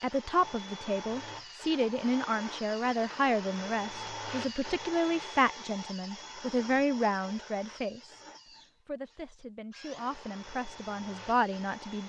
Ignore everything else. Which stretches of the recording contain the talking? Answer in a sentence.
The talking can be heard from 0.0 to 8.2 s and from 8.8 to 12.0 s.